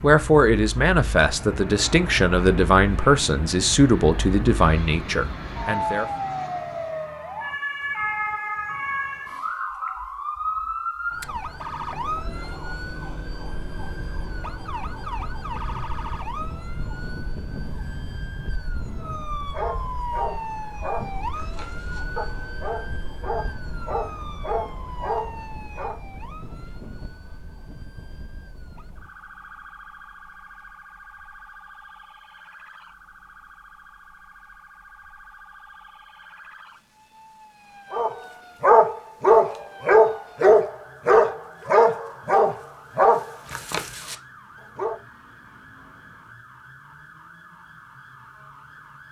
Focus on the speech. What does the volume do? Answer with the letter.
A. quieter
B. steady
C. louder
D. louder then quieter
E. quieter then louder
B.